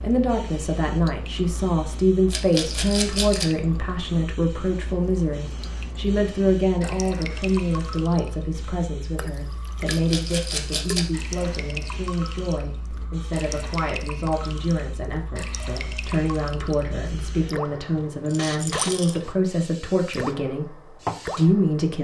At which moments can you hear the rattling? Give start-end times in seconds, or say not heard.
2.3-3.5, 9.8-11.1, 18.2-19.2.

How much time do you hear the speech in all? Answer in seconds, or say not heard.
22 s.